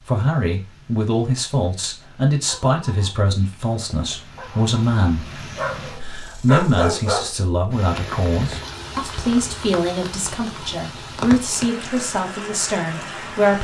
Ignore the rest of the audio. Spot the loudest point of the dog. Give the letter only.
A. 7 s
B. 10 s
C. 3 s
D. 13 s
A.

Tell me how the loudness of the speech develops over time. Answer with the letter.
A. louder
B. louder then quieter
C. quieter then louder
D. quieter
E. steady
E.